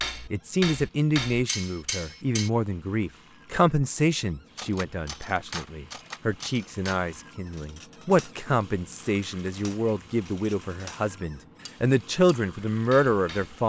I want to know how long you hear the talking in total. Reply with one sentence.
The talking can be heard for 13 seconds in total.